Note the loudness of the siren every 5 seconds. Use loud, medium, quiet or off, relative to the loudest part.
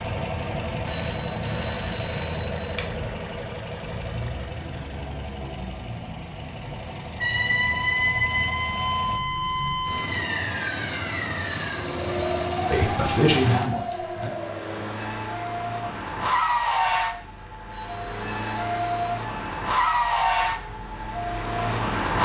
off, loud, medium, medium, medium.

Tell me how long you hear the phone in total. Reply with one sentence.
You can hear the phone for 5 seconds altogether.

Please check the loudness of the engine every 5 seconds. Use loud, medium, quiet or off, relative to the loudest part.
medium, medium, medium, loud, loud.